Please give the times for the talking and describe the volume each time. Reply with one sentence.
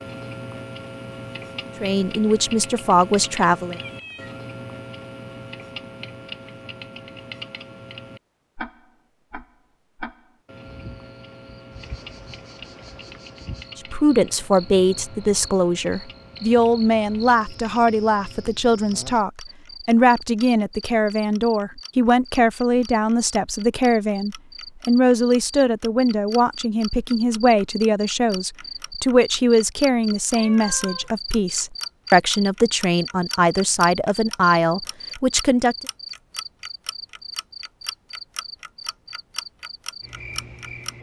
The talking can be heard briefly from 1.8 to 3.8 s; and from 13.8 to 35.8 s, at a steady volume.